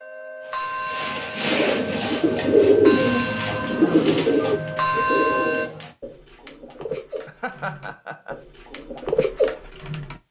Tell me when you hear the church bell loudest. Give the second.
5 s.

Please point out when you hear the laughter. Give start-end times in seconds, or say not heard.
7.2-8.4.